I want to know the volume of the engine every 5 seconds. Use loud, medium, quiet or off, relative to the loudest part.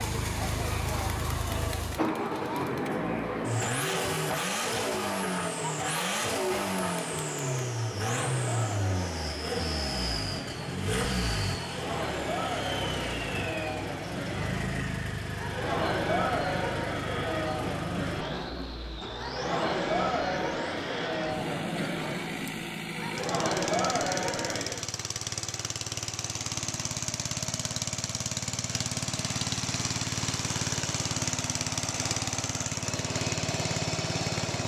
loud, loud, loud, medium, medium, loud, loud.